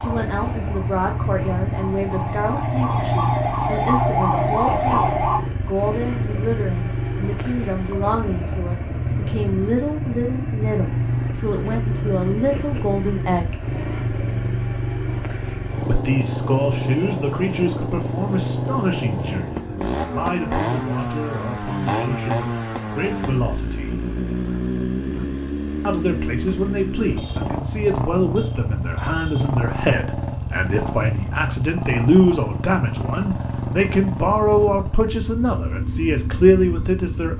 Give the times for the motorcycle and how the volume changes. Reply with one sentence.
You can hear the motorcycle from 0.0 to 37.3 s, at a steady volume.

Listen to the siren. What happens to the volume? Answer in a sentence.
The volume of the siren goes up.